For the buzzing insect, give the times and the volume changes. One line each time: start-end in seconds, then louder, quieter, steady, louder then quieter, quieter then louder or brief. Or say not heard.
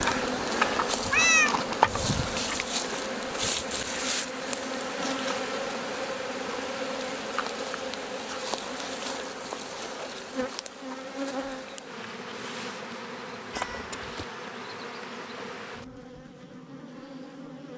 0.0-17.7 quieter.